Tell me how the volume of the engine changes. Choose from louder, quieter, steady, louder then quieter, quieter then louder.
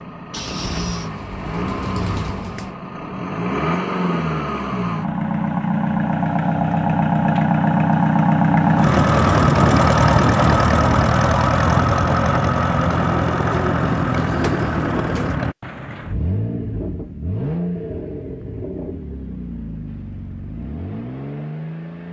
louder then quieter.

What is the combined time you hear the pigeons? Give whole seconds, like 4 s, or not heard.
5 s.